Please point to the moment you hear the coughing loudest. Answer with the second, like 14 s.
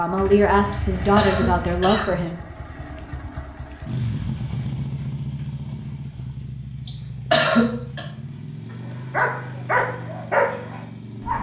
7 s.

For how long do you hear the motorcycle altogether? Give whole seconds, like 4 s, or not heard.
11 s.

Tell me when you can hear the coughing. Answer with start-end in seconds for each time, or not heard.
0.7-2.2, 6.8-8.1.